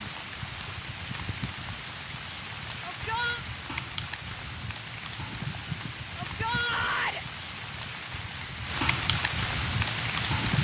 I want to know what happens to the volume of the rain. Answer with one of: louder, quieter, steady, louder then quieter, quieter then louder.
louder.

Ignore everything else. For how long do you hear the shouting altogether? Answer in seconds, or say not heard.
2 s.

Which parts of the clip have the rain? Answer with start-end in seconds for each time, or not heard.
0.0-10.5.